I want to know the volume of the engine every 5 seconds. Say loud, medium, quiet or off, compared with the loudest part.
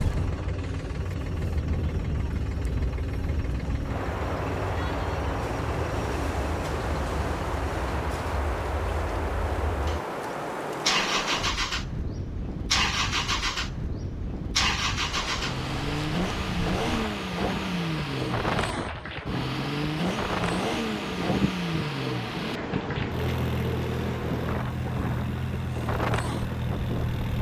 medium, medium, loud, loud, loud, loud.